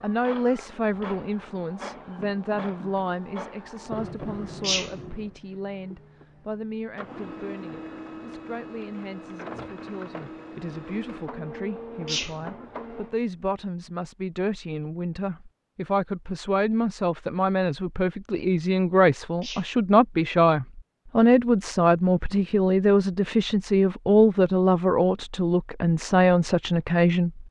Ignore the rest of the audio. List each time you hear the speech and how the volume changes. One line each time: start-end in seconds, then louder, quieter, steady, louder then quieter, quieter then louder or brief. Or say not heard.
0.0-27.4 quieter then louder.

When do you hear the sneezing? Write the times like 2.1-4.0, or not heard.
4.6-5.1, 12.1-12.6, 19.4-19.9.